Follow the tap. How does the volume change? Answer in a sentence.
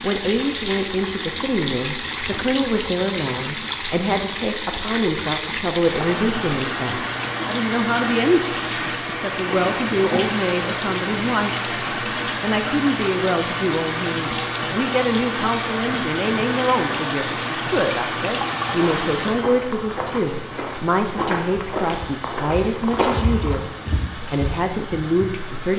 The loudness of the tap goes down.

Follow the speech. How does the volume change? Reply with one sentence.
The loudness of the speech stays about the same.